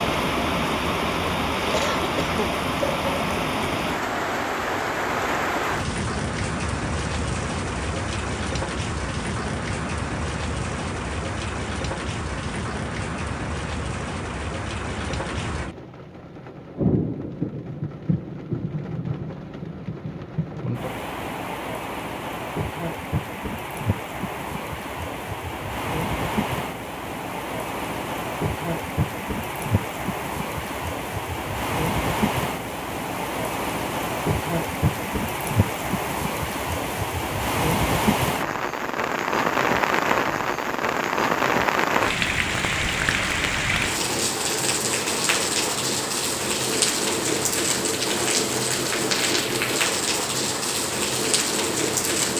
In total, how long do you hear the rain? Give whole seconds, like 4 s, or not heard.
52 s.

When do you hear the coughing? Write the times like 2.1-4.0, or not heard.
1.7-2.6.